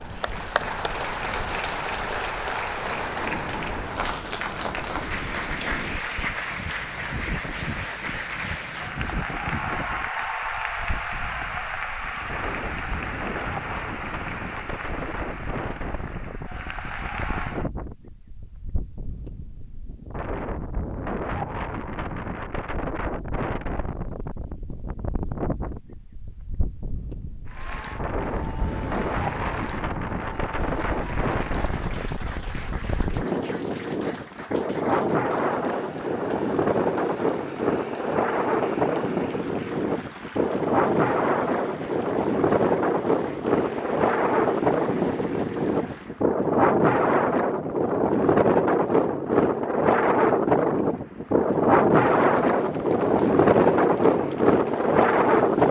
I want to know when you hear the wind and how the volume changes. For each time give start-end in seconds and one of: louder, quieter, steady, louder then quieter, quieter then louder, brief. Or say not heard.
0.0-55.6 louder.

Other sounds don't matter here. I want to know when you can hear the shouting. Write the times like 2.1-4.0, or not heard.
not heard.